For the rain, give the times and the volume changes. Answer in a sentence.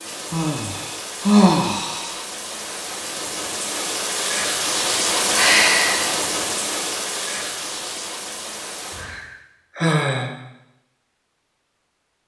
The rain can be heard from 0.0 to 9.2 s, getting louder then quieter.